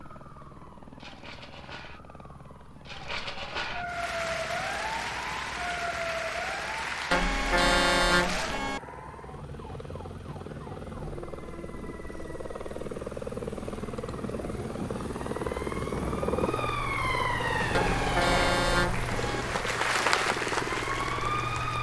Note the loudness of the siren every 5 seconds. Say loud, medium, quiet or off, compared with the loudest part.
medium, medium, quiet, loud, loud.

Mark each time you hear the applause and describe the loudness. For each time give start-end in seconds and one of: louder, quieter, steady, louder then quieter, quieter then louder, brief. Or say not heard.
3.8-8.6 steady
17.5-21.7 louder then quieter.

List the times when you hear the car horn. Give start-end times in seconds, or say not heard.
7.1-8.8, 17.7-19.4.